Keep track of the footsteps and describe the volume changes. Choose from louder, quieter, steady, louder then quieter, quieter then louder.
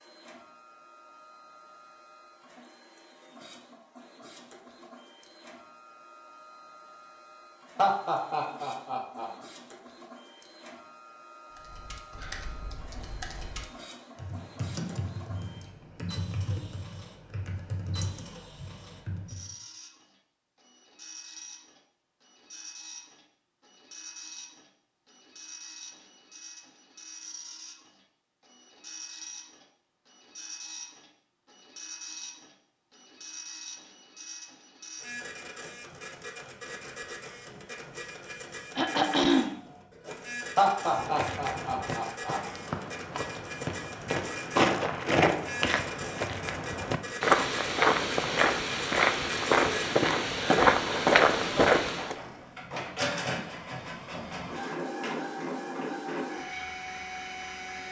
louder.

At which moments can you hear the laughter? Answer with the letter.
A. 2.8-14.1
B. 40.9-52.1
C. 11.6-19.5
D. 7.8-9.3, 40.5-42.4
D.